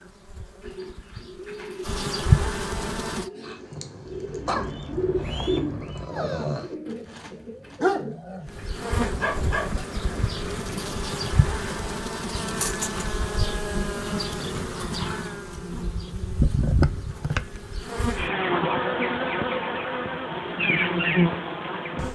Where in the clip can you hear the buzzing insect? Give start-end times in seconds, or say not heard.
0.0-3.3, 8.4-22.0.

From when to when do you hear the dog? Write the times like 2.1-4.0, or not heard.
3.4-9.8.